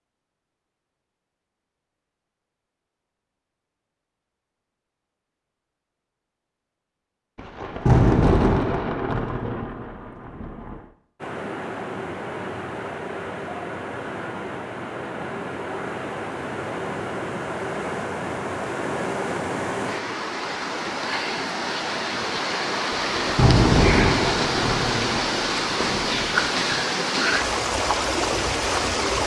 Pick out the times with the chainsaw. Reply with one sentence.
The chainsaw can't be heard in this clip.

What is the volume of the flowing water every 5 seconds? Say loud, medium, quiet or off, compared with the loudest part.
off, off, medium, medium, loud, loud.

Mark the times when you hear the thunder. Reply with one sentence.
You can hear the thunder from 7.3 to 10.8 s and from 22.9 to 26.8 s.